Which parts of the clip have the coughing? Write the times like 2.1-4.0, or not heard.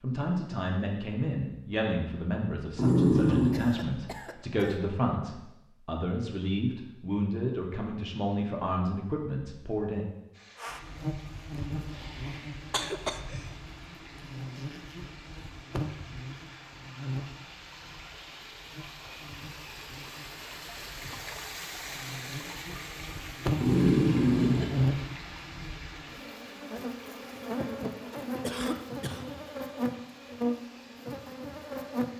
3.1-4.9, 12.7-13.5, 28.4-29.3.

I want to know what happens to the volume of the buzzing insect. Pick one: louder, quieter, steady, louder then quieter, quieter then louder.
quieter then louder.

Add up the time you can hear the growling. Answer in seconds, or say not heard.
2 s.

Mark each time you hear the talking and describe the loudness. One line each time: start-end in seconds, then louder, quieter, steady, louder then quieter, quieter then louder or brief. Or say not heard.
0.0-10.1 steady.